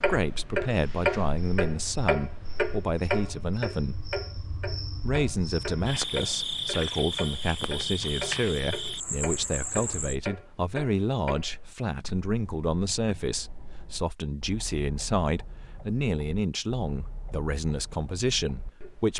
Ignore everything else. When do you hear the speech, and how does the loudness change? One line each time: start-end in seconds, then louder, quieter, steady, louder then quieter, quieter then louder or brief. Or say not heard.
0.0-4.2 steady
5.0-19.1 steady.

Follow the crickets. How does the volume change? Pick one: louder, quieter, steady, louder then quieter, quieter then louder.
louder.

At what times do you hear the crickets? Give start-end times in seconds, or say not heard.
0.0-10.2.